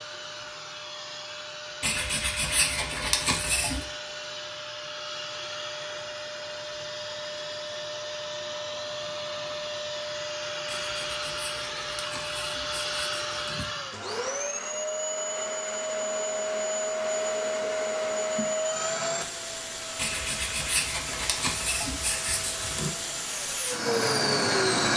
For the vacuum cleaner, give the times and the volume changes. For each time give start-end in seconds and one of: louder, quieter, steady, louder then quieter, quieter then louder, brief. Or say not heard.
0.0-24.9 louder.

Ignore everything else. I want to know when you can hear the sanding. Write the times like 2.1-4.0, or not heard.
1.8-3.9, 10.7-13.7, 19.9-22.9.